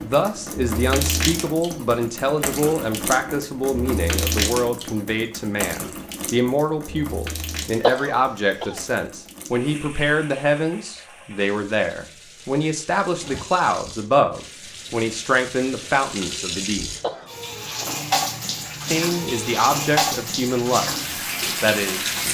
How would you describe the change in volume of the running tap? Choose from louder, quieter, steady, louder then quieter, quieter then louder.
quieter then louder.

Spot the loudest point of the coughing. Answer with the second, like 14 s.
8 s.